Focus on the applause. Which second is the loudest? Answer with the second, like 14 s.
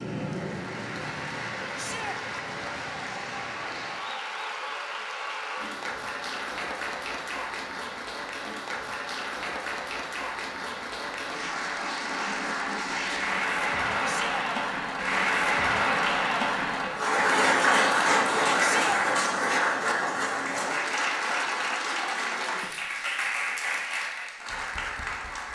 18 s.